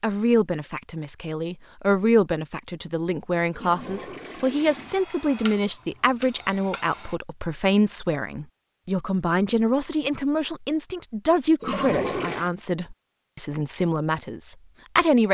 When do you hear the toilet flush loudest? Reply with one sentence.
The loudest moment of the toilet flush is at 12 seconds.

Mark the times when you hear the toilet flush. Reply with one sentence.
You can hear the toilet flush from 3.5 to 4.9 s and from 11.6 to 12.5 s.